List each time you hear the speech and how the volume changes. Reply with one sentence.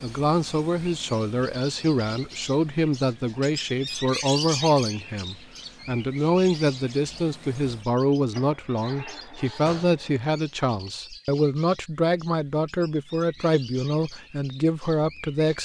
You can hear the speech from 0.0 to 15.6 s, at a steady volume.